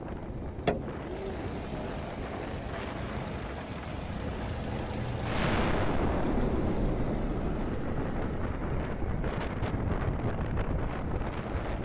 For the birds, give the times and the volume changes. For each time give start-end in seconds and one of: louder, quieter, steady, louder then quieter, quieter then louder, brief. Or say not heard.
not heard.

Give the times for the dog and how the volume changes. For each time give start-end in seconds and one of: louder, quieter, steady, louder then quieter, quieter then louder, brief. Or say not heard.
not heard.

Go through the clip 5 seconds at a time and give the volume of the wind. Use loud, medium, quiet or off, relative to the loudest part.
medium, loud, loud.